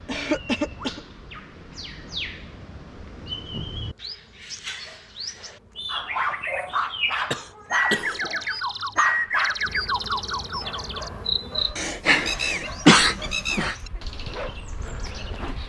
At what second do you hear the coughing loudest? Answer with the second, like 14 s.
13 s.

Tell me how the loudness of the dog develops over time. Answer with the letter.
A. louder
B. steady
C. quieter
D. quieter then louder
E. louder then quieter
C.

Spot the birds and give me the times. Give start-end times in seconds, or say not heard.
0.0-15.6.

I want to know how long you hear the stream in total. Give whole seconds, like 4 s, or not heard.
not heard.